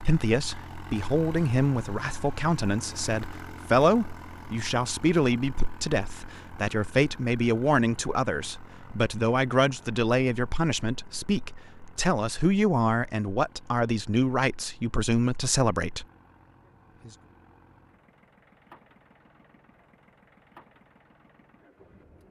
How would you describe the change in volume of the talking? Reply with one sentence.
The loudness of the talking stays about the same.